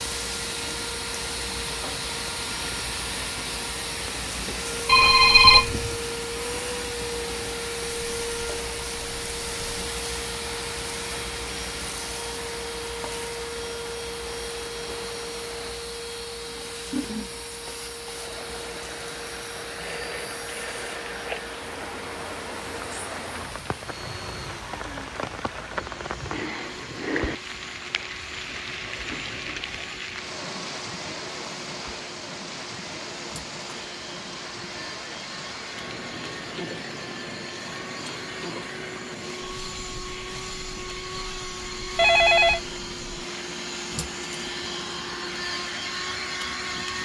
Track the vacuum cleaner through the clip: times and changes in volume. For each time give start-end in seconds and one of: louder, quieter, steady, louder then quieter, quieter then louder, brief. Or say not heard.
0.0-47.0 quieter then louder.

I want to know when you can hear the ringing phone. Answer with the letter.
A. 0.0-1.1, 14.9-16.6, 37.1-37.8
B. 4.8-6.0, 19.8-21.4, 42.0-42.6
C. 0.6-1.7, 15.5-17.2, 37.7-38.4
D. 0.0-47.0
B.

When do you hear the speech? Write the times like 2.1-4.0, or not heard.
not heard.